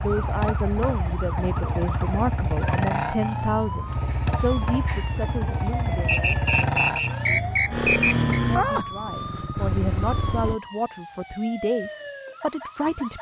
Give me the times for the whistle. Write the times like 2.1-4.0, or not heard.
6.0-8.4.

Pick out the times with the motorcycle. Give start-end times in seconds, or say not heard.
0.0-10.6.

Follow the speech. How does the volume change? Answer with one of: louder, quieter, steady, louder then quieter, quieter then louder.
steady.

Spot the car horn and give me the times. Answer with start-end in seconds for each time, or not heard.
not heard.